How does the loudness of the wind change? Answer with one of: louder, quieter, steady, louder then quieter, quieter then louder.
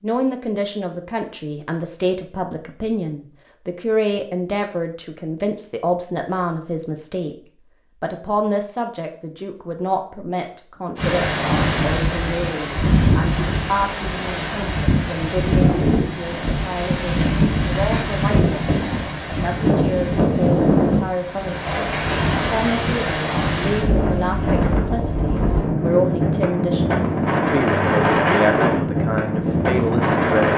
steady.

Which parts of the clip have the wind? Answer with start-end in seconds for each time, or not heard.
10.9-30.5.